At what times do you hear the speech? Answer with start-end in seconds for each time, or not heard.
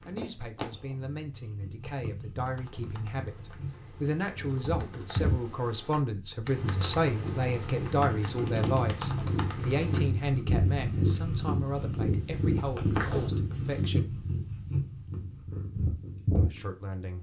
0.1-14.2, 16.4-17.1.